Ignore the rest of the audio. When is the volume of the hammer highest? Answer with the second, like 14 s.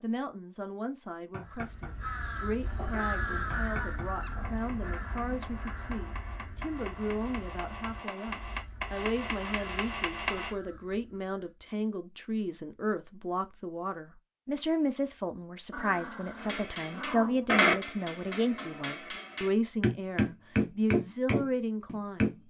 18 s.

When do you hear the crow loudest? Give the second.
3 s.